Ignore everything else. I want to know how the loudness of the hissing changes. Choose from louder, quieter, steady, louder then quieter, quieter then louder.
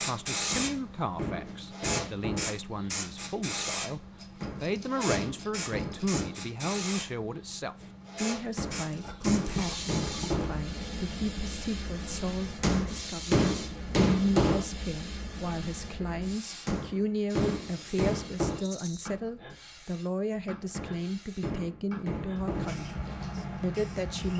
quieter.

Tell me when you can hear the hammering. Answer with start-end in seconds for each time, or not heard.
0.5-2.5, 4.4-6.4, 8.6-10.6, 12.6-14.7, 16.6-18.6, 20.7-22.8.